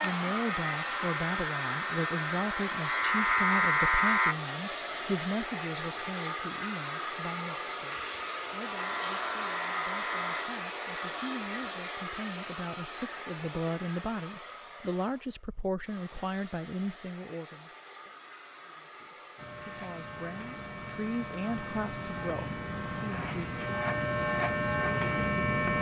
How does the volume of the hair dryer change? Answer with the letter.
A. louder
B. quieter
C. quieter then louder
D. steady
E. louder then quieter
B.